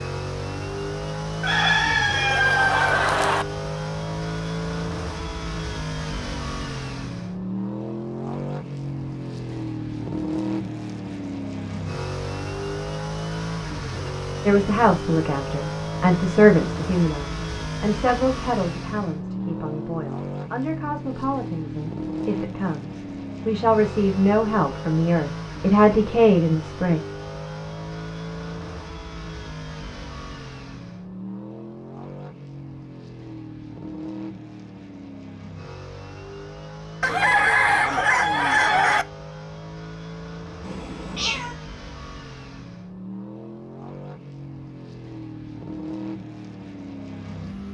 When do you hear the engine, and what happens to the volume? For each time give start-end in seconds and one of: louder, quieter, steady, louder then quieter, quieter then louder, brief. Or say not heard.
0.0-47.6 quieter.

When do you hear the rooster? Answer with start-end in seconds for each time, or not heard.
1.4-3.5, 37.0-39.0.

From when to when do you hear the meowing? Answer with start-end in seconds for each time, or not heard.
40.6-41.5.